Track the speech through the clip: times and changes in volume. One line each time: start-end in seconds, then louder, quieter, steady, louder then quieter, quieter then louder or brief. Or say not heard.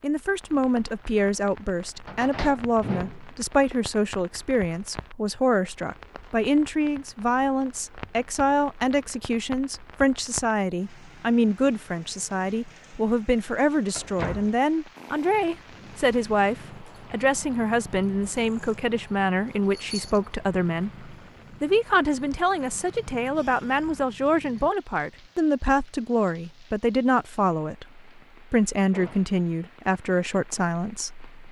0.0-31.4 steady.